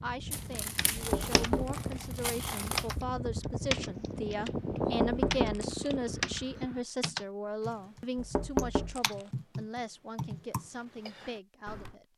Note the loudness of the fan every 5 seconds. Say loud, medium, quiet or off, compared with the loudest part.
loud, loud, off.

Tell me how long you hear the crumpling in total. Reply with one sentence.
The crumpling can be heard for 3 seconds in total.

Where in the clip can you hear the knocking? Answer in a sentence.
You can hear the knocking from 0.9 to 2.0 s, from 4.8 to 5.9 s and from 8.2 to 9.2 s.